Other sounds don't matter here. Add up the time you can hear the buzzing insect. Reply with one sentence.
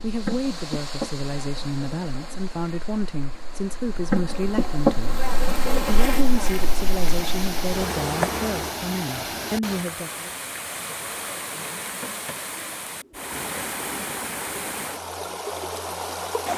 The buzzing insect can be heard for 9 seconds in total.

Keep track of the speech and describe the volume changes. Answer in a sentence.
The volume of the speech stays about the same.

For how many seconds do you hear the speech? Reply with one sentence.
You can hear the speech for 10 seconds altogether.